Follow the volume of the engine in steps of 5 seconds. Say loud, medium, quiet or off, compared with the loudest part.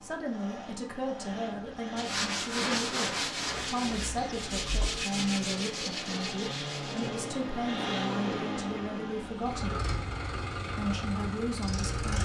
medium, loud, loud.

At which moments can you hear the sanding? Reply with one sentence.
You can hear the sanding from 1.9 to 7.2 s.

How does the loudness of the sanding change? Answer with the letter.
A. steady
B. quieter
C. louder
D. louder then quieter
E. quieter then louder
B.